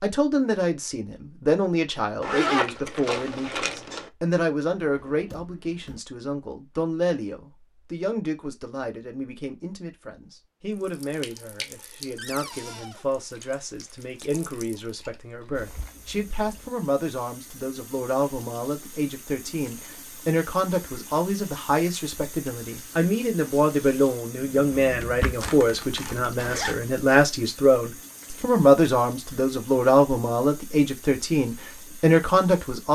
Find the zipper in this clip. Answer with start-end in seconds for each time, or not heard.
2.2-4.1, 25.4-26.9.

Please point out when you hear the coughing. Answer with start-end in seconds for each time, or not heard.
not heard.